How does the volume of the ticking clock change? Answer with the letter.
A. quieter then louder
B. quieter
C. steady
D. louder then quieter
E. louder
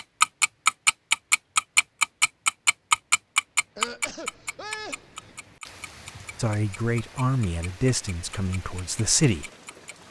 B.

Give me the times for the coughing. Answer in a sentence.
The coughing can be heard from 3.8 to 5.3 s.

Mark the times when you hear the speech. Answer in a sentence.
You can hear the speech from 6.3 to 9.5 s.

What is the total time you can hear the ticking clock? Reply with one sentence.
You can hear the ticking clock for 10 seconds altogether.